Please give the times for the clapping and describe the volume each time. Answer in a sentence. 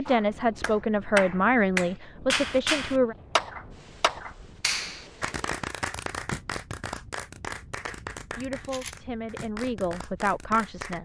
The clapping can be heard from 0.1 to 11.0 s, getting quieter.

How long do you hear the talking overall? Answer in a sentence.
You can hear the talking for 6 seconds altogether.